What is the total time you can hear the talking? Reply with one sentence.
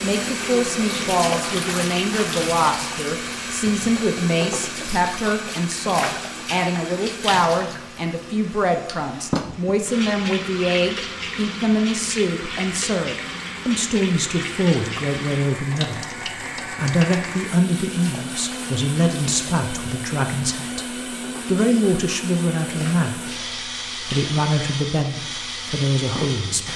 The talking can be heard for 27 seconds in total.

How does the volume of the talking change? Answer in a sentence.
The loudness of the talking stays about the same.